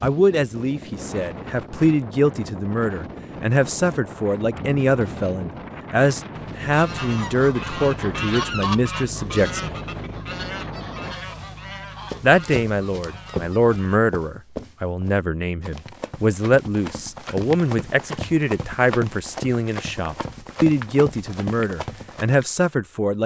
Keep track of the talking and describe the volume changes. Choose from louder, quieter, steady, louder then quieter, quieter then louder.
steady.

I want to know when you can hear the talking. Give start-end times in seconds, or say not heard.
0.0-9.8, 12.2-23.2.